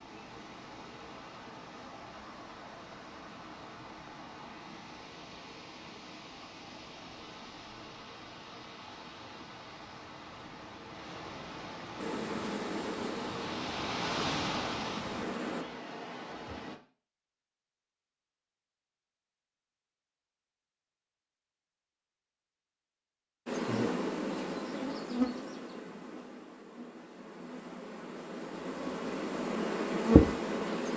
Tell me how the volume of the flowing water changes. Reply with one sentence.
The loudness of the flowing water goes up.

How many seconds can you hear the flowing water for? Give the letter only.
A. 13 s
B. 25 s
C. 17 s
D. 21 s
C.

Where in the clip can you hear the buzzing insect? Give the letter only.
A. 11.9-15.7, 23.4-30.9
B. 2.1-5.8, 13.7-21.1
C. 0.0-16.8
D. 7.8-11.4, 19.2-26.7
A.